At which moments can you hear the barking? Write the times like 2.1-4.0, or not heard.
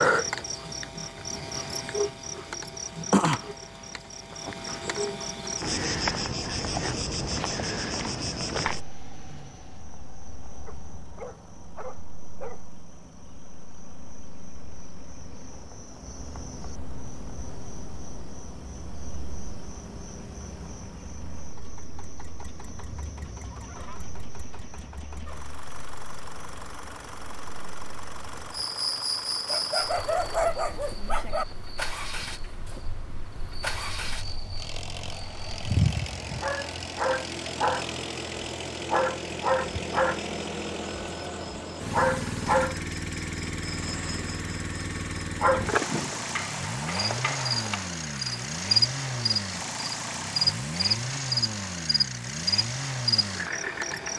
10.7-12.7, 29.4-31.4.